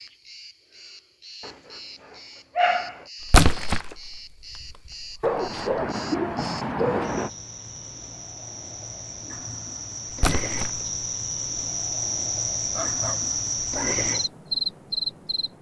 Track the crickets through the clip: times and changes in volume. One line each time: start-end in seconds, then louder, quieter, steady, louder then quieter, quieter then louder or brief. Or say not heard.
0.0-15.5 louder.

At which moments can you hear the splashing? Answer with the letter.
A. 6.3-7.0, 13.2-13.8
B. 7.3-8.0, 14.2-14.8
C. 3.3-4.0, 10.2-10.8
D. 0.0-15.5
C.